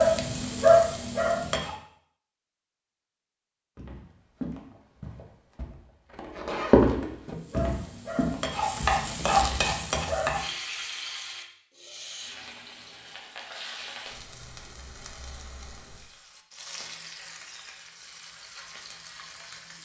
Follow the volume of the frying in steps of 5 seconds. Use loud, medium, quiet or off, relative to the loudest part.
loud, medium, quiet, quiet.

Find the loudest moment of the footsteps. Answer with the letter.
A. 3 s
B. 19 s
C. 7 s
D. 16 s
C.